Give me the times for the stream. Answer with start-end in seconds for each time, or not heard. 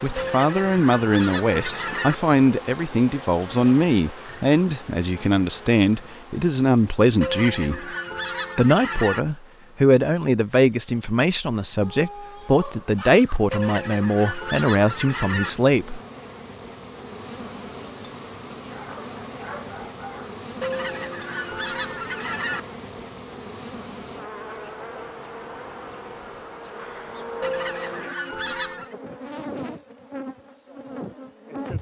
not heard.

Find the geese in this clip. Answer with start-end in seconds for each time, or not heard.
0.1-2.1, 7.2-9.2, 13.5-15.5, 20.6-22.6, 27.4-28.9.